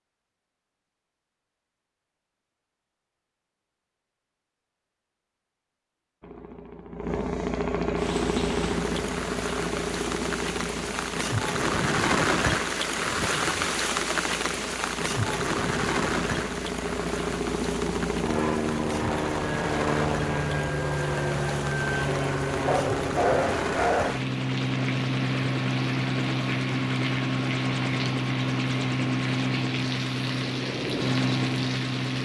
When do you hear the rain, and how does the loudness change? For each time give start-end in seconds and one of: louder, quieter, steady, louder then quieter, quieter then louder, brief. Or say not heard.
8.0-32.2 quieter.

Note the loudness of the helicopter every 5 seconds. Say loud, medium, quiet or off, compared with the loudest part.
off, loud, medium, loud, loud, loud, loud.